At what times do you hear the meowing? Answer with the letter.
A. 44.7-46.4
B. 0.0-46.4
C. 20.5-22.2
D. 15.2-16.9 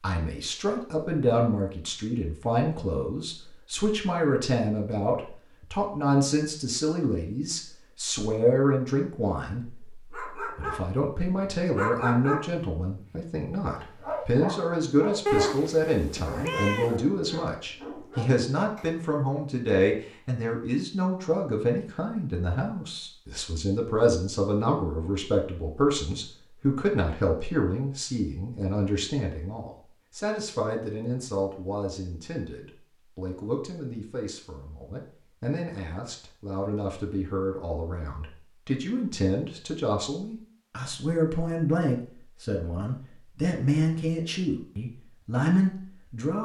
D.